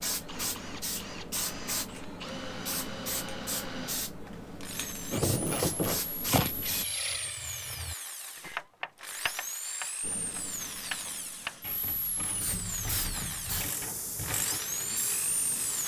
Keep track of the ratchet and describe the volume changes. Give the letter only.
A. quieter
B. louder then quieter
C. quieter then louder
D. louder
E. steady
A.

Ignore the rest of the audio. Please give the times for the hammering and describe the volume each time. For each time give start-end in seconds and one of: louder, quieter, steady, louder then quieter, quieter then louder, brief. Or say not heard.
not heard.